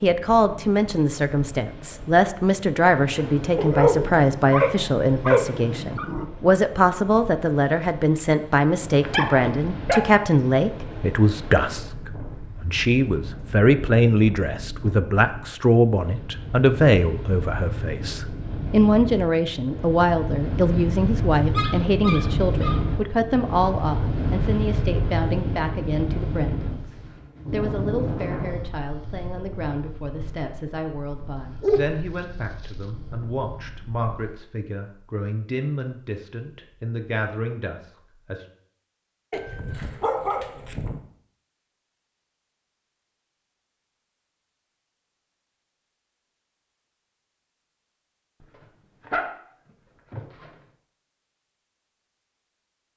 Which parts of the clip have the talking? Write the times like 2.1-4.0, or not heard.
0.0-26.8, 27.5-38.5.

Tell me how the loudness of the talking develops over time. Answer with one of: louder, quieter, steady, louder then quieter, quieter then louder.
quieter.